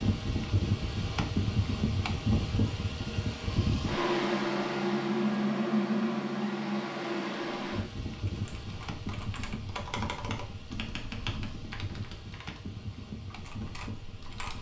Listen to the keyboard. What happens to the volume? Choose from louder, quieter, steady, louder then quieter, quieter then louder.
louder then quieter.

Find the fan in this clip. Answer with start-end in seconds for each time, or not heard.
0.0-14.5.